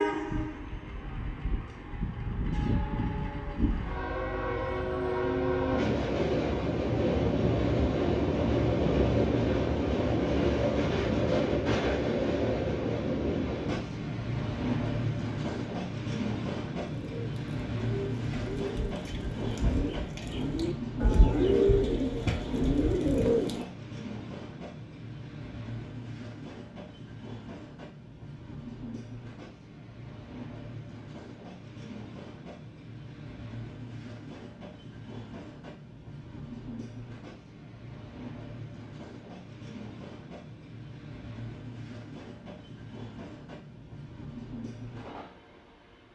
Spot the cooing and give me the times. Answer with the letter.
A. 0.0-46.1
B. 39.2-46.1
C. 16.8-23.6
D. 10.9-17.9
C.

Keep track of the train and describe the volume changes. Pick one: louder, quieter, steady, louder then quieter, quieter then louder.
quieter.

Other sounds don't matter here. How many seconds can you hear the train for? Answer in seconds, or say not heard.
46 s.